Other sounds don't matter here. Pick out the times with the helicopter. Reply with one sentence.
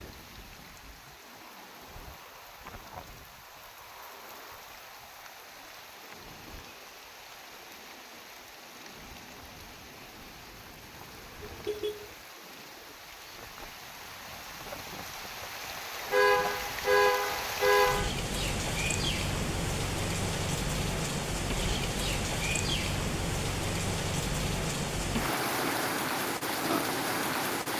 You can't hear the helicopter here.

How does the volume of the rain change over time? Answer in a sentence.
The loudness of the rain goes up.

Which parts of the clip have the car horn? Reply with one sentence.
You can hear the car horn from 11.4 to 12.2 s and from 16.1 to 18.1 s.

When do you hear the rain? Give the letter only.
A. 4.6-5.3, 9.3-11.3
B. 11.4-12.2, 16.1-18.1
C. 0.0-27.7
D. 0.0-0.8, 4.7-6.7
C.